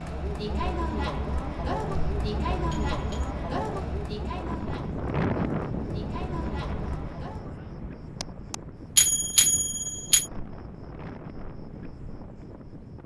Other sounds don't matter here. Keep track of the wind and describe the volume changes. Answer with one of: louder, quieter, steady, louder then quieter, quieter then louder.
quieter.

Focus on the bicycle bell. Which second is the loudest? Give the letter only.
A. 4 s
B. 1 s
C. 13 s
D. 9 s
D.